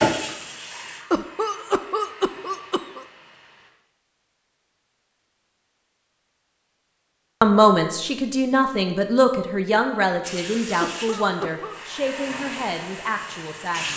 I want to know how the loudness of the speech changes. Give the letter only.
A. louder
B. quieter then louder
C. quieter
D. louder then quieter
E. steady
C.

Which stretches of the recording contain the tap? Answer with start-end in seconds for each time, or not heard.
0.0-3.7, 10.2-13.9.